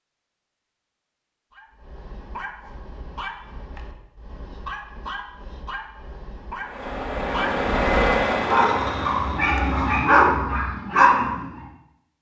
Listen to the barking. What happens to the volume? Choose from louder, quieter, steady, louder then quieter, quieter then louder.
louder.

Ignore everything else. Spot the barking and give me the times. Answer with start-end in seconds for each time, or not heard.
1.5-11.6.